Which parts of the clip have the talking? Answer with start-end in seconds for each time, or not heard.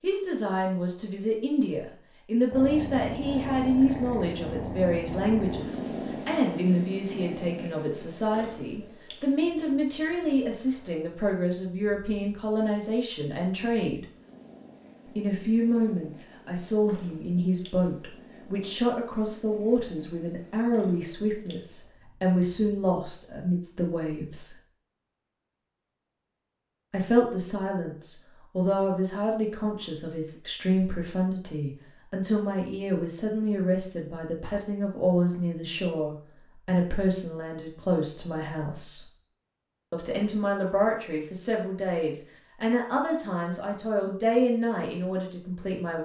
0.0-14.1, 15.1-24.6, 26.9-39.0, 39.9-46.0.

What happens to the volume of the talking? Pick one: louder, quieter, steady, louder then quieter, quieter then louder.
steady.